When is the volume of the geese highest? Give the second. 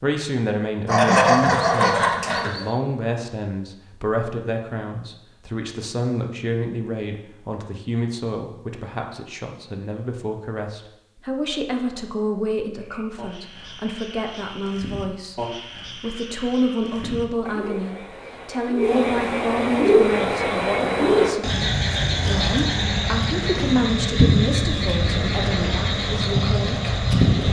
1 s.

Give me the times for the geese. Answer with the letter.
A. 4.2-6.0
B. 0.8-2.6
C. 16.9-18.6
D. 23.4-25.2
B.